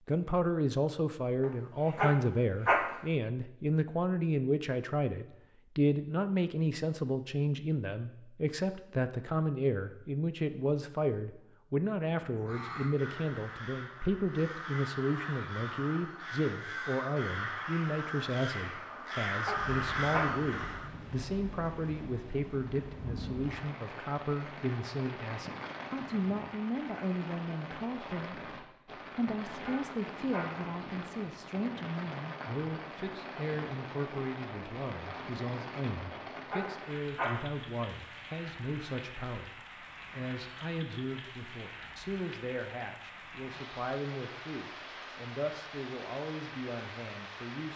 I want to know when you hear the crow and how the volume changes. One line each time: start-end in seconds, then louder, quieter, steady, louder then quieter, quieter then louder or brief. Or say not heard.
12.2-20.9 louder.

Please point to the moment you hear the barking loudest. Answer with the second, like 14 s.
3 s.